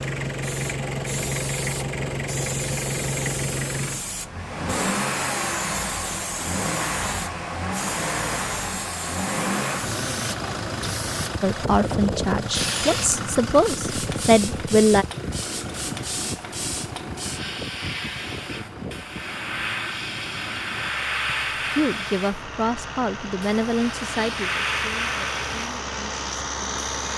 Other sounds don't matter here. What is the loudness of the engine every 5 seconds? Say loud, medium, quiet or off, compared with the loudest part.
loud, loud, loud, medium, medium, loud.